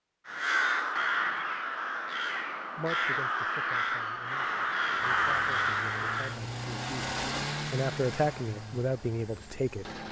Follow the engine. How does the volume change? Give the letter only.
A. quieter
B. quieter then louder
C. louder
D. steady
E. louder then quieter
E.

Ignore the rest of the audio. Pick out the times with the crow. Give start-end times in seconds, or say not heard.
0.2-6.4.